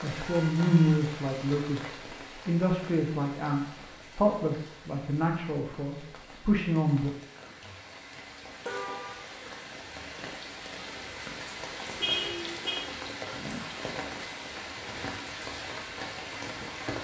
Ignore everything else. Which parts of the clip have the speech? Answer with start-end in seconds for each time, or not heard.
0.0-7.1.